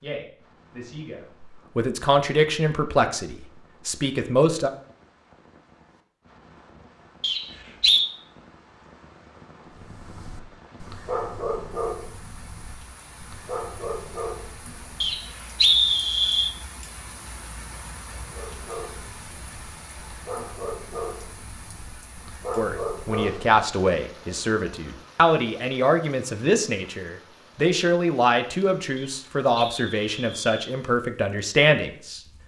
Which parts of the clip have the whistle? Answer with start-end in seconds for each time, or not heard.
7.2-8.1, 15.0-16.5, 28.9-30.6.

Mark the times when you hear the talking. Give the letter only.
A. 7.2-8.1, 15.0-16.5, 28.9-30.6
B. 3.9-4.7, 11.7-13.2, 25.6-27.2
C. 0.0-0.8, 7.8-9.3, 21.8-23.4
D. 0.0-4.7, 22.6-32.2
D.